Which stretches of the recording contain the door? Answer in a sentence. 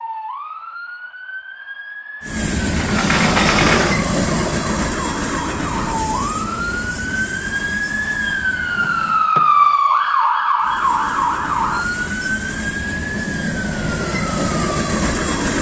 The door can be heard from 2.8 to 4.0 s and from 8.8 to 9.8 s.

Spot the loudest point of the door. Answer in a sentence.
The volume of the door peaks at 4 seconds.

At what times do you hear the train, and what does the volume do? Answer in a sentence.
You can hear the train from 2.2 to 9.3 s, getting quieter; and from 10.6 to 15.5 s, getting louder.